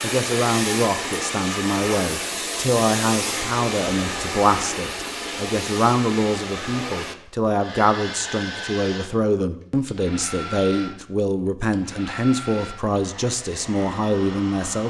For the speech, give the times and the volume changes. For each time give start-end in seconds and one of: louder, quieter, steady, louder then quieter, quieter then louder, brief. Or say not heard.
0.0-14.8 steady.